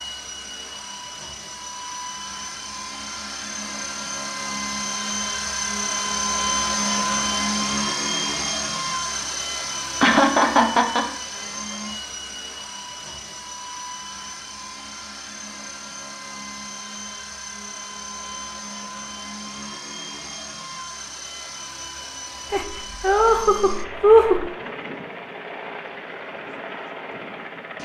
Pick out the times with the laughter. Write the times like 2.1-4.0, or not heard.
10.0-11.1, 22.5-24.4.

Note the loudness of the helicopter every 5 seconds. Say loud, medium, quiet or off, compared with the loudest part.
medium, loud, medium, medium, medium, medium.